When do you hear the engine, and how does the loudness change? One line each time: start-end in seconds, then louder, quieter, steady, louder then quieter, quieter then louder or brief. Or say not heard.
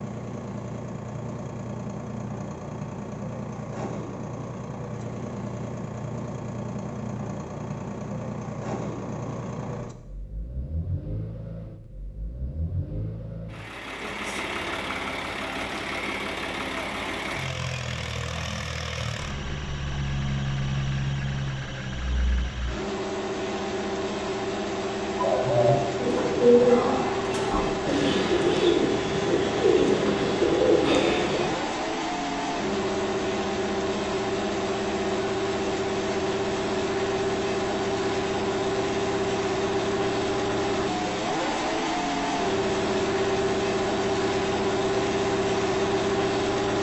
0.0-46.7 louder.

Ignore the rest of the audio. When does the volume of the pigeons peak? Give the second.
27 s.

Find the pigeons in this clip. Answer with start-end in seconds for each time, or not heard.
25.1-31.6.